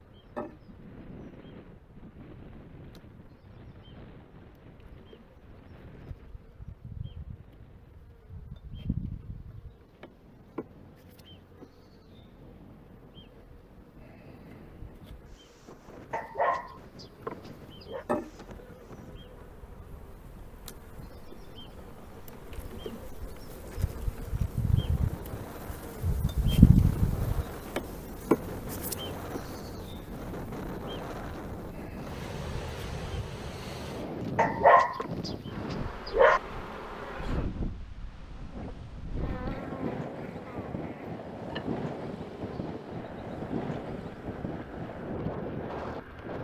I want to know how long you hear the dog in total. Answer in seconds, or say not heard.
4 s.